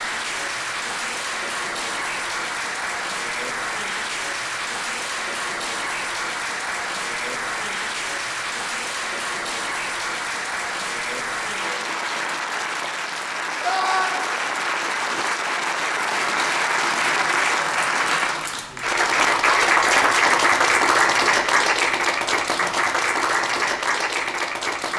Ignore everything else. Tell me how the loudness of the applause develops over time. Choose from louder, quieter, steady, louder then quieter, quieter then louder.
louder.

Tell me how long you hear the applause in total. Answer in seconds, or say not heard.
25 s.